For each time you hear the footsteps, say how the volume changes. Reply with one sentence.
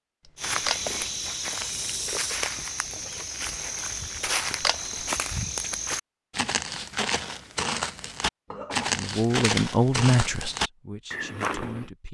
The footsteps can be heard from 0.3 to 11.9 s, at a steady volume.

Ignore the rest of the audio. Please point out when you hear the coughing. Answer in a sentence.
You can hear the coughing from 8.4 to 9.1 s.